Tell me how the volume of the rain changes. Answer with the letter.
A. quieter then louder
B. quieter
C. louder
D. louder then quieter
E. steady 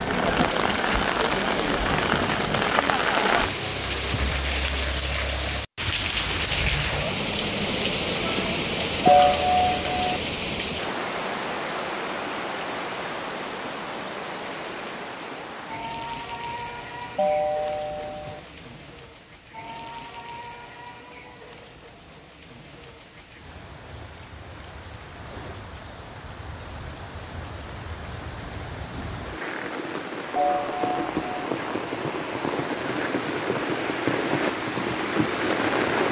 A.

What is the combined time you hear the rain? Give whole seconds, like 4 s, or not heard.
36 s.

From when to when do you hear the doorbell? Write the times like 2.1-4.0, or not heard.
9.1-10.2, 17.1-18.4, 30.4-31.5.